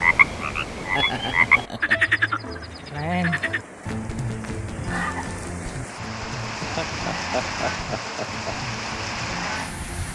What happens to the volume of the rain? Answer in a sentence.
The loudness of the rain goes up.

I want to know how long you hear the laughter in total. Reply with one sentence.
The laughter can be heard for 3 seconds in total.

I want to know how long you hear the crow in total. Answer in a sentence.
You can't hear the crow here.